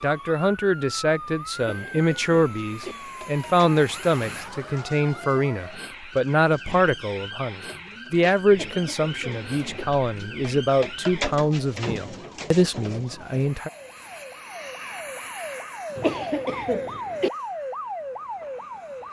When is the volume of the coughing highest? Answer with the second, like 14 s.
16 s.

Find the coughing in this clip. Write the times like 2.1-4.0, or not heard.
1.6-3.0, 8.5-9.8, 15.9-17.3.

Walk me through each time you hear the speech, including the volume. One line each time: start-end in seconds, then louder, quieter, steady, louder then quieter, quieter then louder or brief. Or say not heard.
0.0-13.7 steady.